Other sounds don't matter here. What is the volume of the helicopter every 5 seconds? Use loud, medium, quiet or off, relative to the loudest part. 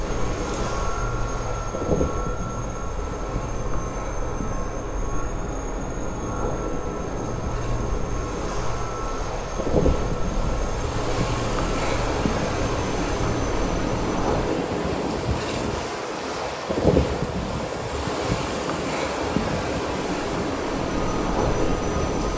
loud, loud, loud, off, loud.